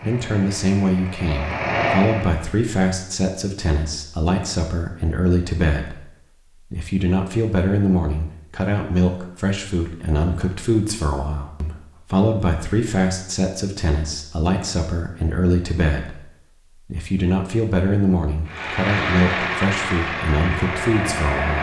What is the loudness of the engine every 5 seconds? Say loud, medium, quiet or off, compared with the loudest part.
loud, off, off, loud, loud.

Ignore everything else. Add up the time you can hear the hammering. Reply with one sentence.
You can't hear the hammering here.